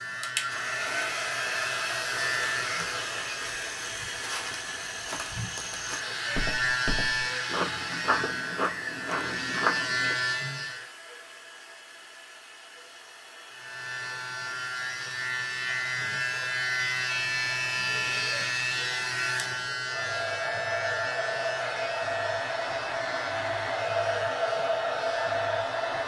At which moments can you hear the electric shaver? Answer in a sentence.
The electric shaver can be heard from 0.0 to 3.5 s, from 5.8 to 10.9 s and from 13.5 to 26.0 s.